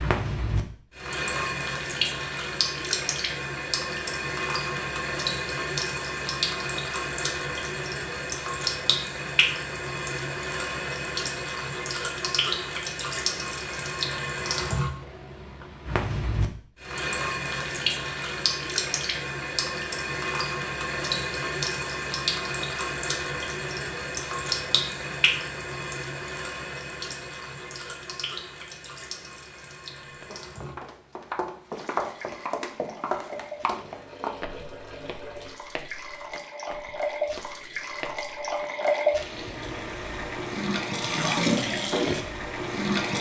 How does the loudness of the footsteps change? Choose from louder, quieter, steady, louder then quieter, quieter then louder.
quieter.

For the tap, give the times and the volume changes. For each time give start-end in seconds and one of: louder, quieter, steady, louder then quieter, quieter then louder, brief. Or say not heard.
0.0-43.1 quieter then louder.